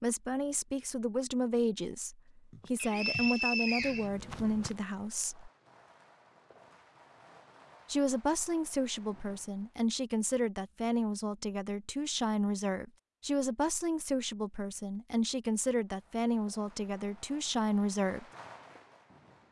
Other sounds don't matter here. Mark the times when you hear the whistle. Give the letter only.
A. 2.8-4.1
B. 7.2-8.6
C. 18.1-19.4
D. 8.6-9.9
A.